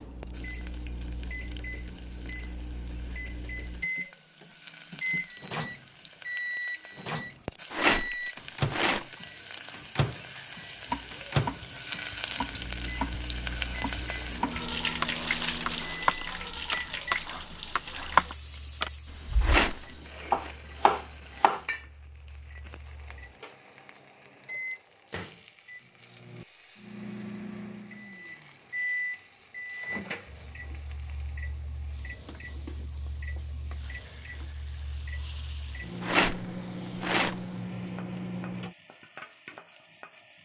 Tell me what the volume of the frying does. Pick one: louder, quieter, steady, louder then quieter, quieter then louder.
louder then quieter.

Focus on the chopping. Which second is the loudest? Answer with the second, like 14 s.
18 s.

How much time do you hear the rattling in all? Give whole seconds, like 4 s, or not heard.
4 s.